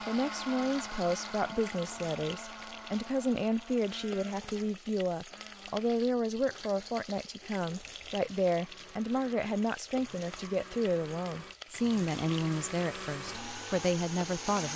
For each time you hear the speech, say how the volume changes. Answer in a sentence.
The speech can be heard from 0.1 to 14.7 s, at a steady volume.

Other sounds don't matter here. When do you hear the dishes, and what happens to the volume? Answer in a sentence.
The dishes can't be heard in this clip.